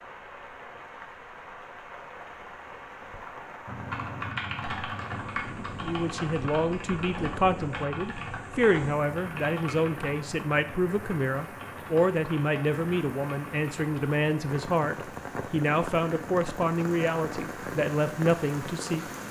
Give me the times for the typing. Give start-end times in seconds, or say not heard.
3.6-14.1.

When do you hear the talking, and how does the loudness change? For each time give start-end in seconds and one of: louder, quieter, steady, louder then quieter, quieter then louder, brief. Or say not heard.
5.8-19.1 steady.